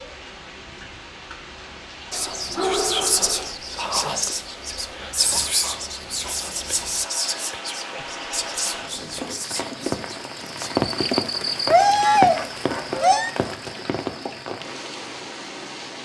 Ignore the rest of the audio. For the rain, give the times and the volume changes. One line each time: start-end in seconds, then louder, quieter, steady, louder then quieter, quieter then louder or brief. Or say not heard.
0.0-16.0 louder then quieter.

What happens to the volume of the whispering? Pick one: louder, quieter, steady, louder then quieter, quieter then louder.
quieter.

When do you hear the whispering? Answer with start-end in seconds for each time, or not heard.
2.1-10.7.